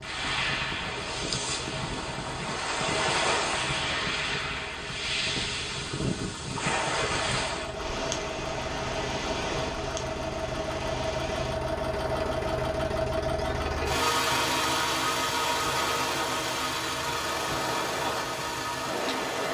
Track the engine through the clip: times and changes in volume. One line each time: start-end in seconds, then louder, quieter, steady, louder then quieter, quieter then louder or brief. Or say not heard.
0.0-19.4 louder.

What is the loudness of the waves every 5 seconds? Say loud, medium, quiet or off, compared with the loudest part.
loud, loud, medium, medium.